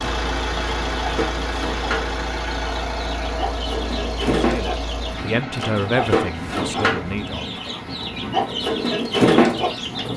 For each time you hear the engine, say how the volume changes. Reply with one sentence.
The engine can be heard from 0.0 to 10.1 s, getting quieter.